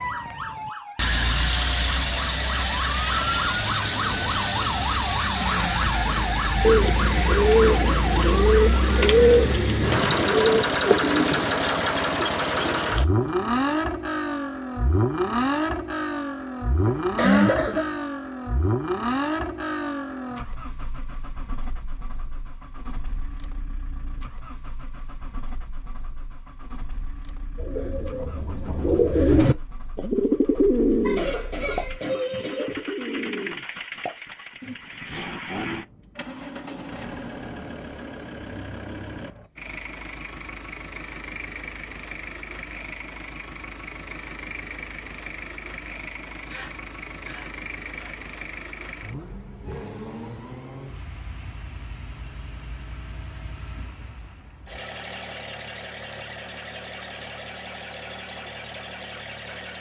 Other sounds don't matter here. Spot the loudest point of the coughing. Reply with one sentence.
The loudest moment of the coughing is at 17 seconds.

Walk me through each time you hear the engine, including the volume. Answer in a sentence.
The engine can be heard from 0.0 to 59.7 s, getting quieter.